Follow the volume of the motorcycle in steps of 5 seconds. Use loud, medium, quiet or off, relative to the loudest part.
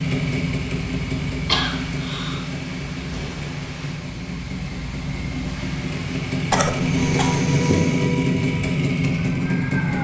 medium, loud.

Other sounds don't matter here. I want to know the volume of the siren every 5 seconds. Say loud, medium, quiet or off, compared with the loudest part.
off, loud.